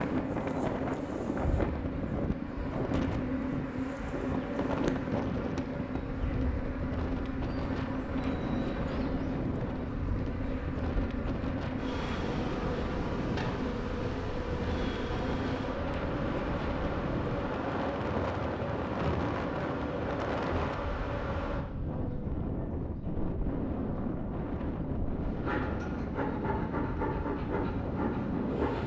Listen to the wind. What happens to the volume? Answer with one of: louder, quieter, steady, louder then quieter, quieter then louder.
steady.